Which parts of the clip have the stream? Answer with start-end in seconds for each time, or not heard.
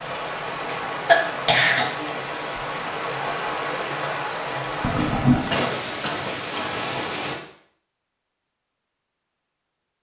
0.0-7.4.